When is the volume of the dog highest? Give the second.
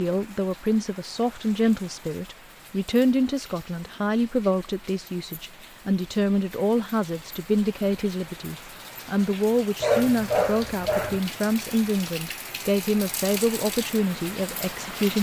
10 s.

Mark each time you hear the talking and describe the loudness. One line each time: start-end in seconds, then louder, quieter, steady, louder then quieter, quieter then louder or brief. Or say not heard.
0.0-15.1 steady.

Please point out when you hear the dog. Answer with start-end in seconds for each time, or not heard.
9.8-11.2.